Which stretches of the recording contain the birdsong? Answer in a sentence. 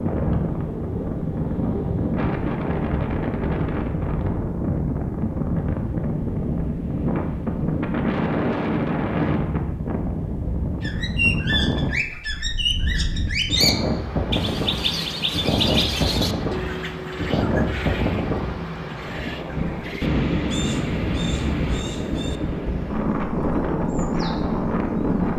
You can hear the birdsong from 10.8 to 25.3 s.